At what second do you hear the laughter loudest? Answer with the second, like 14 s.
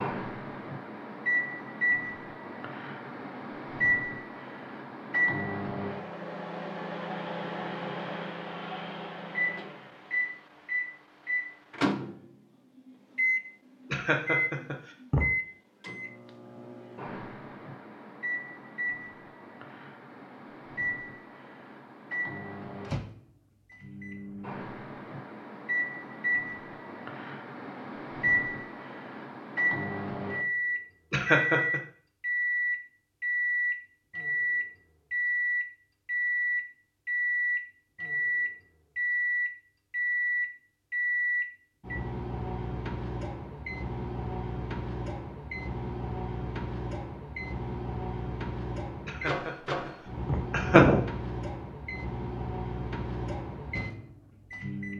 51 s.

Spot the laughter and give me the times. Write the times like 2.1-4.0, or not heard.
13.9-15.2, 31.1-31.8, 49.0-51.0.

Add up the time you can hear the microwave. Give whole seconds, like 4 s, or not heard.
55 s.